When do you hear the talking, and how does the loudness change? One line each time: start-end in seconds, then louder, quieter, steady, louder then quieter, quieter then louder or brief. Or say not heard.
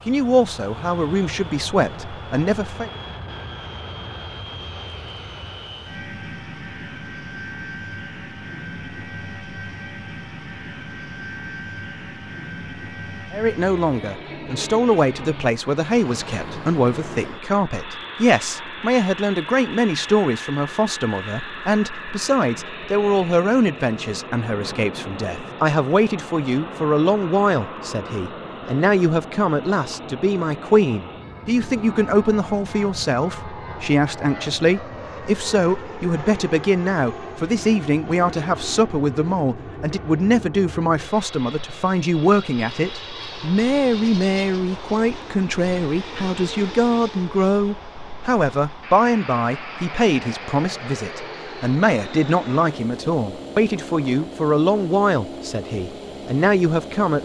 0.1-2.9 brief
13.3-57.2 steady.